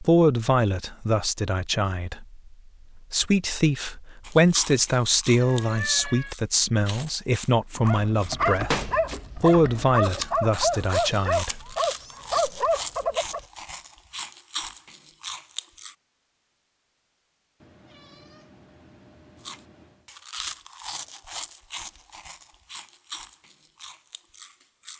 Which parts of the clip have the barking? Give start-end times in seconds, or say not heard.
7.8-13.4.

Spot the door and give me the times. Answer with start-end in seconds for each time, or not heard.
8.7-9.8.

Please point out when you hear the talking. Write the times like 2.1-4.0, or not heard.
0.0-2.4, 3.1-11.6.